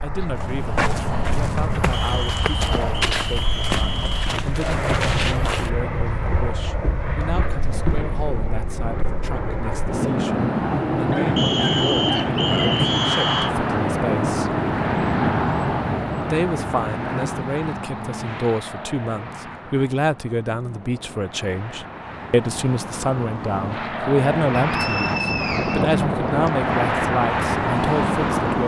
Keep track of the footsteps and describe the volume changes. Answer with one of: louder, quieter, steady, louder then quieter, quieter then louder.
quieter.